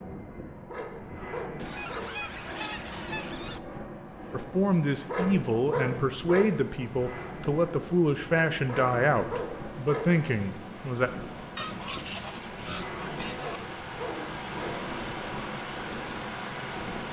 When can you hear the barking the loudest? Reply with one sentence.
The volume of the barking peaks at 6 seconds.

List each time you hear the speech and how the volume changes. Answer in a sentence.
You can hear the speech from 4.3 to 11.1 s, at a steady volume.